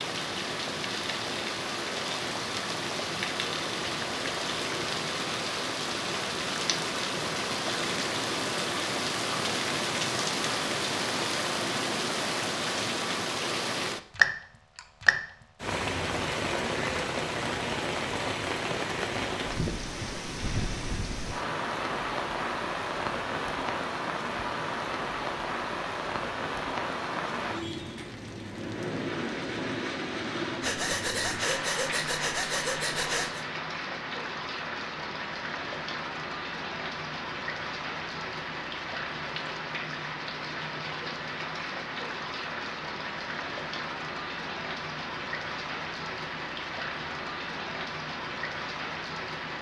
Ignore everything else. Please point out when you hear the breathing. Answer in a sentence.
You can hear the breathing from 30.6 to 33.5 s.